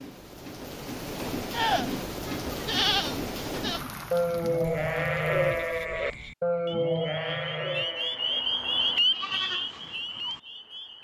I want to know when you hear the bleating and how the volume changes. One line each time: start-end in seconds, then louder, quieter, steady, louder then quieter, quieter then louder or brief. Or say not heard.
1.5-10.4 quieter.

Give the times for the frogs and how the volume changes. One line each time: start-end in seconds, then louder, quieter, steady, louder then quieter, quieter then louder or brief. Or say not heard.
4.6-10.9 louder then quieter.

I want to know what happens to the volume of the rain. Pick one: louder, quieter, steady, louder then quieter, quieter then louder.
quieter.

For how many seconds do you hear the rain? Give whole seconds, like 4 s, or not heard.
6 s.